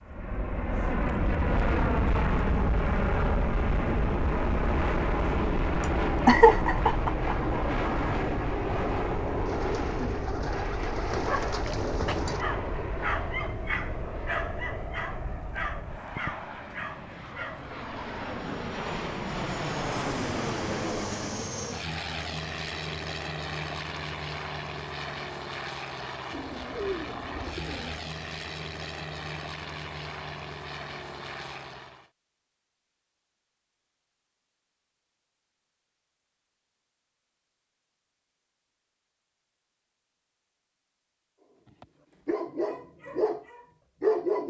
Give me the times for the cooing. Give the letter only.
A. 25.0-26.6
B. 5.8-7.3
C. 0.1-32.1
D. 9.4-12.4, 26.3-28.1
D.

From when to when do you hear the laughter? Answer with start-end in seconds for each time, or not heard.
5.8-7.3.